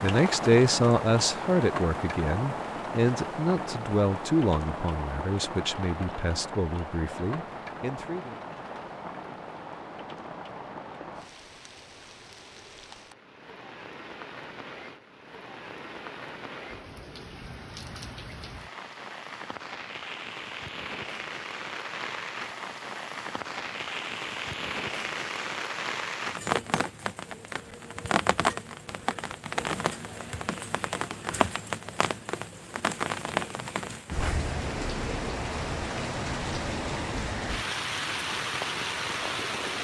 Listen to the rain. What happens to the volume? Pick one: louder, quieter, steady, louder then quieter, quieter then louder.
quieter then louder.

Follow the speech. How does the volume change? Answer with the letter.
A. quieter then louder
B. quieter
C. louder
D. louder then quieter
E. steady
B.